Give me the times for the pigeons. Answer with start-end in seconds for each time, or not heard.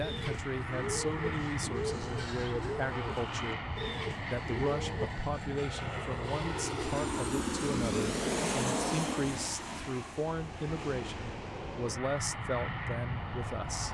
0.0-5.2.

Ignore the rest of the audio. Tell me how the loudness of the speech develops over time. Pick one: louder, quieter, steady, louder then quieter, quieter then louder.
steady.